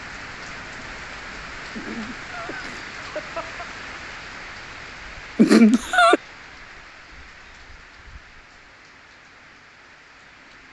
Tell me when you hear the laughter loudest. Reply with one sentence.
The volume of the laughter peaks at 6 seconds.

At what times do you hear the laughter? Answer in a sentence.
You can hear the laughter from 1.8 to 3.6 s and from 5.3 to 6.2 s.